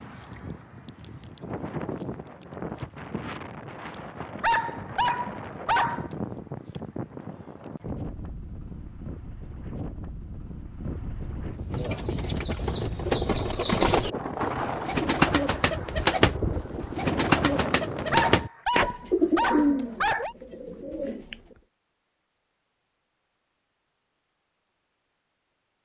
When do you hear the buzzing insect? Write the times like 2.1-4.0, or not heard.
not heard.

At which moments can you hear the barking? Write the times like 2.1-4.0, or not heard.
4.4-6.2, 18.1-20.4.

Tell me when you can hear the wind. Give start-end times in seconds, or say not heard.
0.0-18.4.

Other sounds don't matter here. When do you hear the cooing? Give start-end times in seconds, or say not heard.
11.7-21.6.